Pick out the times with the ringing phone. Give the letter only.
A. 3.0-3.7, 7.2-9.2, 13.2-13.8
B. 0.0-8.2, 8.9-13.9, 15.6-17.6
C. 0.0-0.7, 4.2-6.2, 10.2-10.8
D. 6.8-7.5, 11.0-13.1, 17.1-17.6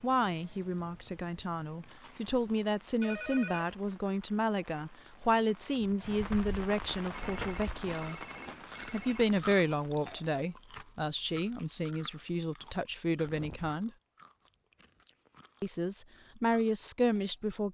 A.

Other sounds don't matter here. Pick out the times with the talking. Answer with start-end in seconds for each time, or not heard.
0.0-8.2, 8.9-13.9, 15.6-17.6.